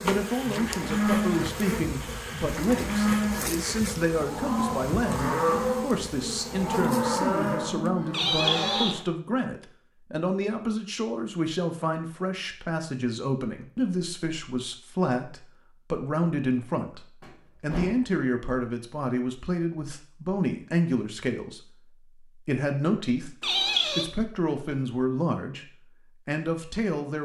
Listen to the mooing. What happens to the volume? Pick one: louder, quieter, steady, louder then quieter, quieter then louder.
steady.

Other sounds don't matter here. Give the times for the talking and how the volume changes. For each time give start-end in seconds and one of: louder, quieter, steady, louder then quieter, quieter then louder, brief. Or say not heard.
0.0-27.2 steady.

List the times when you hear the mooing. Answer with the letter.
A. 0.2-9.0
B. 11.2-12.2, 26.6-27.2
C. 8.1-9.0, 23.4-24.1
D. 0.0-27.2
A.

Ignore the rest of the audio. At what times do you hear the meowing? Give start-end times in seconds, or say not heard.
8.1-9.0, 23.4-24.1.